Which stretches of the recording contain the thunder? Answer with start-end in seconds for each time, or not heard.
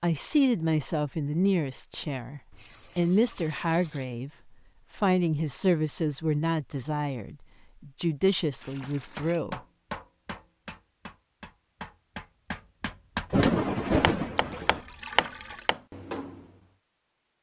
13.3-14.8.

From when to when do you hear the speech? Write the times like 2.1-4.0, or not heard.
0.0-4.3, 5.0-9.6.